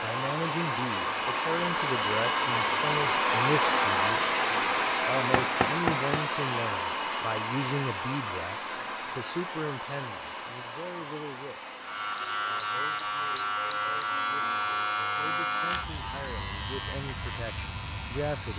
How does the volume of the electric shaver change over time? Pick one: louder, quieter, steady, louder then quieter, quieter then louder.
quieter.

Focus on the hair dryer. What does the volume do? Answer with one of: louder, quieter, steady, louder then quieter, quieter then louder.
quieter.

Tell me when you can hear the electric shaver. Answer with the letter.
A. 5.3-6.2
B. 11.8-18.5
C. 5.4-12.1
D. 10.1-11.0
B.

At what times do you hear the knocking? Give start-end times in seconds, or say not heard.
5.3-6.2.